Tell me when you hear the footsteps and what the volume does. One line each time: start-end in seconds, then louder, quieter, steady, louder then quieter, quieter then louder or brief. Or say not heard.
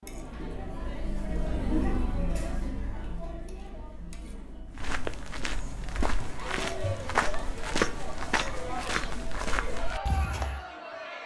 4.7-10.7 louder then quieter.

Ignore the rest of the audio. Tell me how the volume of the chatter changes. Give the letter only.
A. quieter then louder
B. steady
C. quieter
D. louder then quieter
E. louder
A.